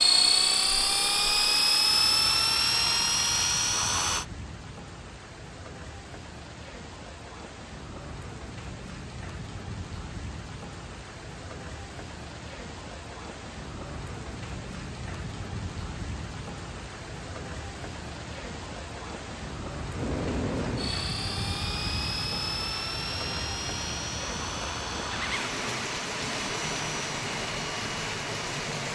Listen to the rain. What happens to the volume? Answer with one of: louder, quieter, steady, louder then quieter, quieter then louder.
louder.